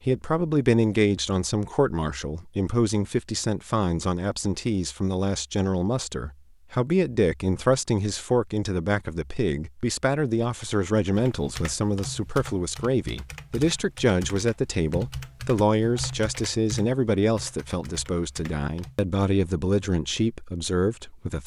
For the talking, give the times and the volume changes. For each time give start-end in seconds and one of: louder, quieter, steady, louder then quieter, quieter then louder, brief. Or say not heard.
0.1-21.4 steady.